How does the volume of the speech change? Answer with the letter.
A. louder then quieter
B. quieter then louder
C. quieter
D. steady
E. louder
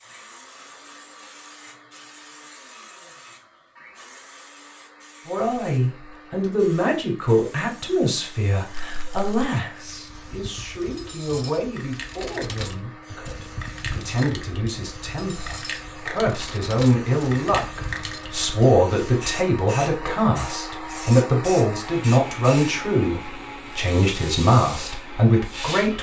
B.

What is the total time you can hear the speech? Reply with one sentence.
The speech can be heard for 21 seconds in total.